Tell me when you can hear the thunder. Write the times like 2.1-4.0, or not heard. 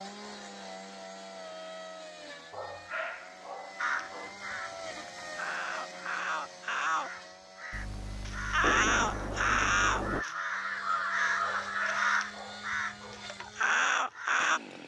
7.7-10.2.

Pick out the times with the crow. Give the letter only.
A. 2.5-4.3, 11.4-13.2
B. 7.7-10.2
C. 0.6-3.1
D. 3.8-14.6
D.